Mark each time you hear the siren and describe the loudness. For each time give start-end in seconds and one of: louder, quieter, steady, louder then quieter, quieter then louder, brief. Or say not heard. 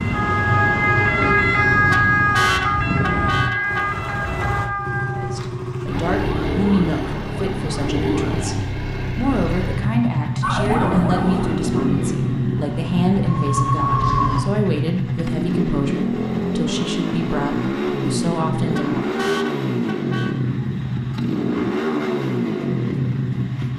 0.0-8.6 quieter
10.4-14.4 quieter then louder.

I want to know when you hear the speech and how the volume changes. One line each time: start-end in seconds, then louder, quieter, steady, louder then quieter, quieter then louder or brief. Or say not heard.
5.2-19.1 steady.